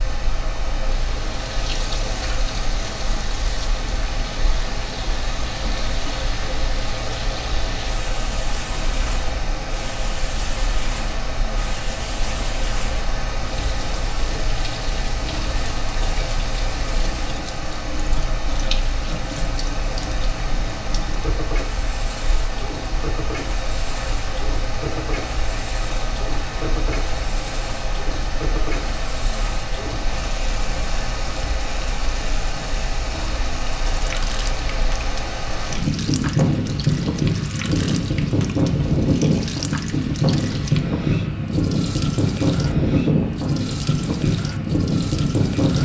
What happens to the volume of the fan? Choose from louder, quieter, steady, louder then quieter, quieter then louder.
louder.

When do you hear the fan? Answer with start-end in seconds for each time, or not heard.
0.0-45.7.